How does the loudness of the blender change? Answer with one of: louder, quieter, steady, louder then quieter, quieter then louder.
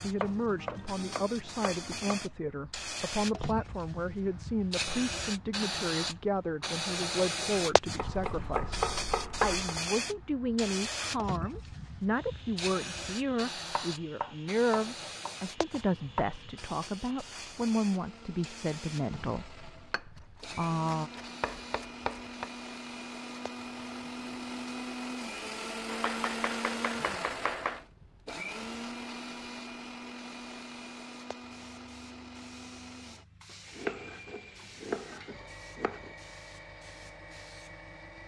louder then quieter.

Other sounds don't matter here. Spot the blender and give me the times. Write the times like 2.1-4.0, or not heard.
12.1-38.2.